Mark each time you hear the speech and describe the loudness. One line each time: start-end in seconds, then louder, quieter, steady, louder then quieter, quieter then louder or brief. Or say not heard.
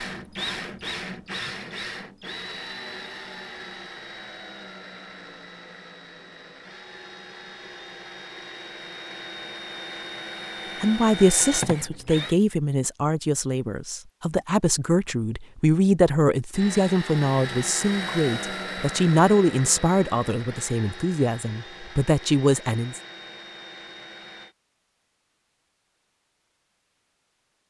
10.8-23.0 steady.